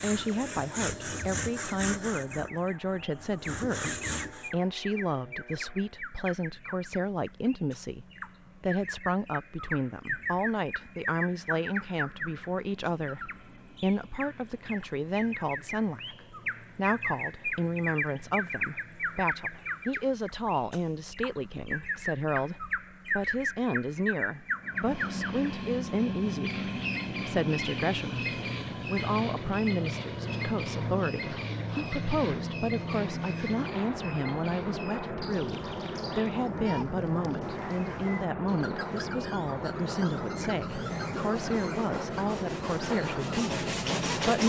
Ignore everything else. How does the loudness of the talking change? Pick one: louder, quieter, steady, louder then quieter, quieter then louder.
steady.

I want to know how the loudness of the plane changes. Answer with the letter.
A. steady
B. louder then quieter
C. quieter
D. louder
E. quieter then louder
D.